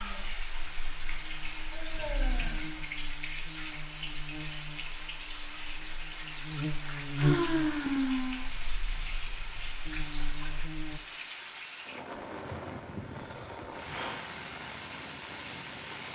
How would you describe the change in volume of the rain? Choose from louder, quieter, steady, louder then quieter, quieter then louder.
steady.